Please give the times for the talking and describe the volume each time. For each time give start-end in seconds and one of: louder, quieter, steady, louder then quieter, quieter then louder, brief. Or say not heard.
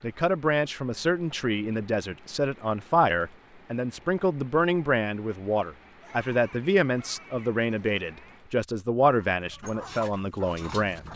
0.0-11.1 steady.